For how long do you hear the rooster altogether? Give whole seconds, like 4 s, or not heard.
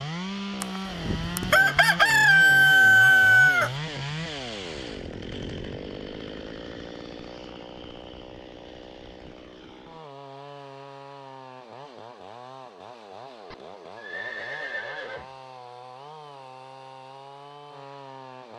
3 s.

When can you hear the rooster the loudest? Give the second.
3 s.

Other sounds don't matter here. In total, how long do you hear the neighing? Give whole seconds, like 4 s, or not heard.
2 s.